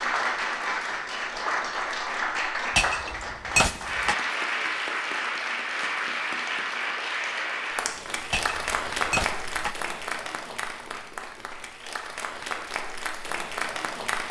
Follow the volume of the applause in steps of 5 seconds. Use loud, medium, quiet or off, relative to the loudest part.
loud, loud, medium.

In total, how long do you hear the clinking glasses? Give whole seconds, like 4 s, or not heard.
3 s.